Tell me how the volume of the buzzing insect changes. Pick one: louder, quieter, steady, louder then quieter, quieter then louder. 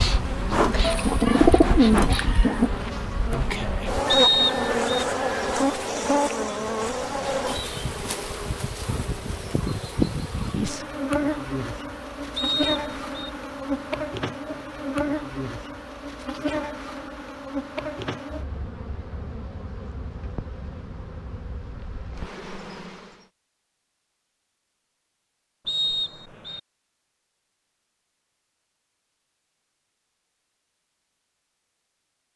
quieter.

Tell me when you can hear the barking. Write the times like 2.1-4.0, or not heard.
not heard.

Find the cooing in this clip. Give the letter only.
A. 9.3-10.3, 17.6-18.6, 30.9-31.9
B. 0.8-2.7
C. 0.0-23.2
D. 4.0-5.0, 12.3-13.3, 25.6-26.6
B.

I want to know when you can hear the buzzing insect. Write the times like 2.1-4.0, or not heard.
0.0-23.2.